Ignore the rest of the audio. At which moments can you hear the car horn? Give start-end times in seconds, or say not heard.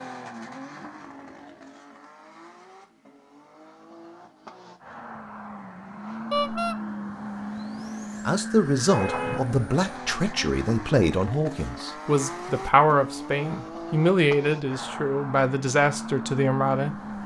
6.3-6.8, 8.8-9.8.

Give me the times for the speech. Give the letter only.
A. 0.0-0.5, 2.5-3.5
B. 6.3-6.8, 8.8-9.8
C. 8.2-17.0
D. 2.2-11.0
C.